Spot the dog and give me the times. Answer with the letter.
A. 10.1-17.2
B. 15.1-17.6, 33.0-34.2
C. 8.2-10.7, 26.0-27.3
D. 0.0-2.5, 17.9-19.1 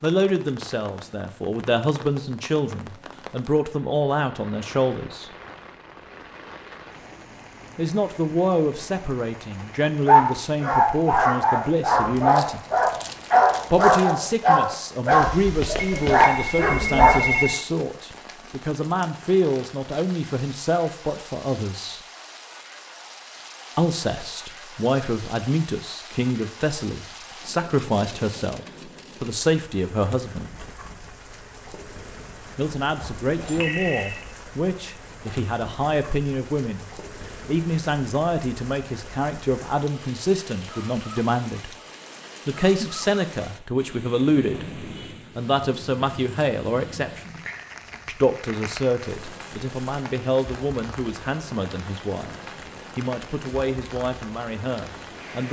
A.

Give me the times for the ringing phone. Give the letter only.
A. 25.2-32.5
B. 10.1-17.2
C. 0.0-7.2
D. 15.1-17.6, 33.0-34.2
D.